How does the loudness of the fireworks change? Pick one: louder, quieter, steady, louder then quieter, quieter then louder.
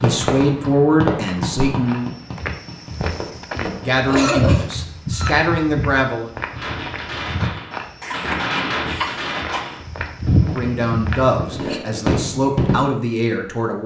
quieter then louder.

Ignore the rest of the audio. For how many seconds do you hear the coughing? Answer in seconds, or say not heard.
2 s.